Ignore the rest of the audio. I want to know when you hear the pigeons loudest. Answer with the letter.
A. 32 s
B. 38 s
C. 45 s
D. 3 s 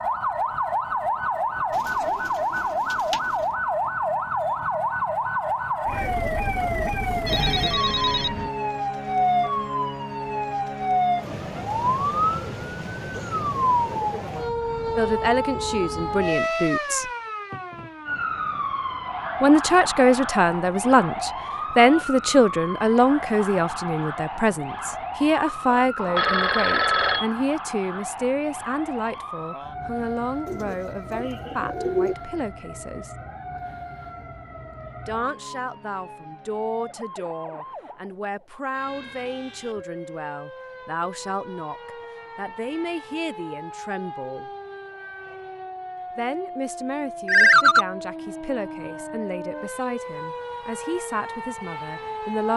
A.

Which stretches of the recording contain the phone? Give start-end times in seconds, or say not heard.
7.2-8.5, 25.9-27.2, 47.2-47.9.